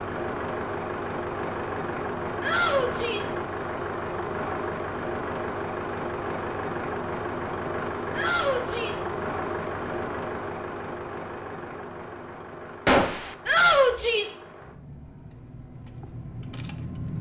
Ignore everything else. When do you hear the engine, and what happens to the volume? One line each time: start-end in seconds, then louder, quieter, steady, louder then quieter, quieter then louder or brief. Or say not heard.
0.0-17.1 quieter.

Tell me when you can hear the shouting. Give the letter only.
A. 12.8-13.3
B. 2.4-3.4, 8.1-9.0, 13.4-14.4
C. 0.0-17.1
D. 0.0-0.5
B.